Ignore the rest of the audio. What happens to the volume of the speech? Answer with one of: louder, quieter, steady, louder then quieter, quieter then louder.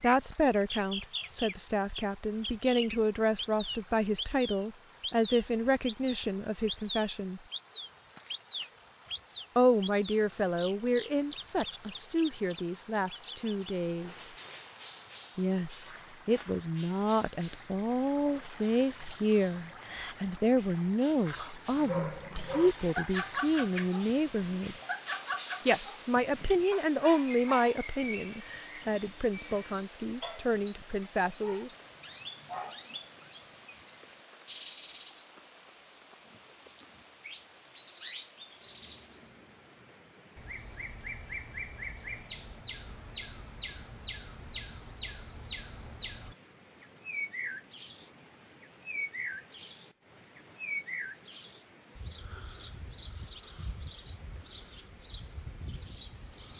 steady.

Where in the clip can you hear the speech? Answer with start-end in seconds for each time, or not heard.
0.0-7.4, 9.6-14.2, 15.3-24.8, 25.6-31.7.